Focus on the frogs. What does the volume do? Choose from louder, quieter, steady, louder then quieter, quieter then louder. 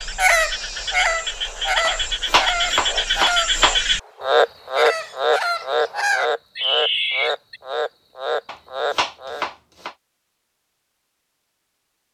louder then quieter.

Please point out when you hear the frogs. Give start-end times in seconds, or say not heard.
0.0-9.4.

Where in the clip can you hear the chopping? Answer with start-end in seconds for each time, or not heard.
1.8-3.8, 8.4-9.9.